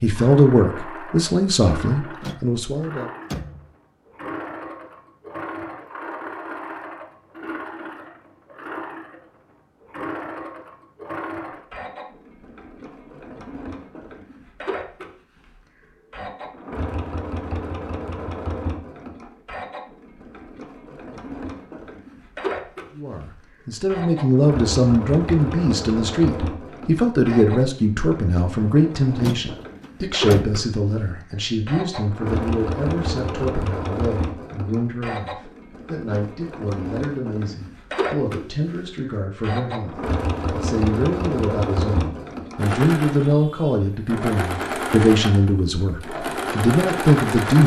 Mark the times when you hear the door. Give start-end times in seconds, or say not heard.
2.2-3.6, 29.2-30.6.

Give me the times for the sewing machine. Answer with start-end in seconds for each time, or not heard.
0.0-47.6.